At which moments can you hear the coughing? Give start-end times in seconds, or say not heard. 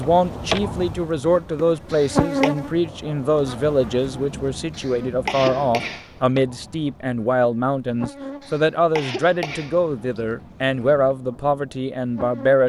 1.9-2.5, 4.7-6.1, 8.4-10.2.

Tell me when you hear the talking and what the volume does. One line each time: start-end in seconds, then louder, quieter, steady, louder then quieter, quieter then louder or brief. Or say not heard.
0.0-12.6 steady.